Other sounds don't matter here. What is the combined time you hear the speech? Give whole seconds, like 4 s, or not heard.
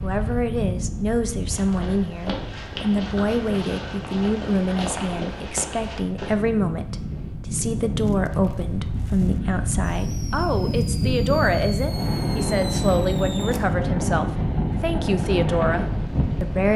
17 s.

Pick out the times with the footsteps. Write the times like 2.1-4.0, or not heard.
1.5-6.3.